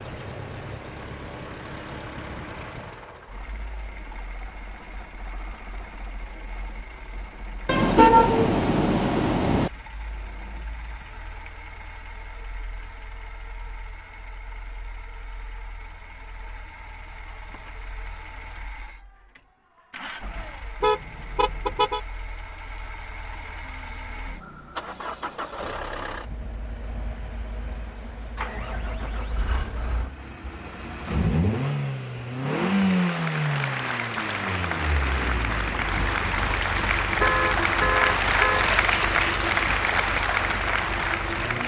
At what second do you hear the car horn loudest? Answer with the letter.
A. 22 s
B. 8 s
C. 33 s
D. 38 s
B.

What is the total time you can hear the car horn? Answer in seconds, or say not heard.
5 s.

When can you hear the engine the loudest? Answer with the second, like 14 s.
33 s.